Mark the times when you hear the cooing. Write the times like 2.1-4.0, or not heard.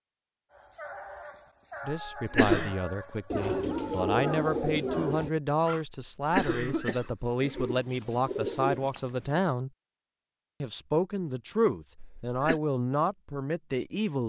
3.3-5.3, 7.4-9.4.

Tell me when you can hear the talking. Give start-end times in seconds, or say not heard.
1.9-9.7, 10.6-14.2.